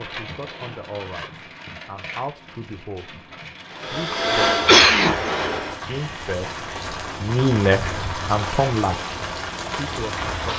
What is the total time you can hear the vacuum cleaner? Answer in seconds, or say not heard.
2 s.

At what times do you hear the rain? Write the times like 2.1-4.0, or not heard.
0.0-10.5.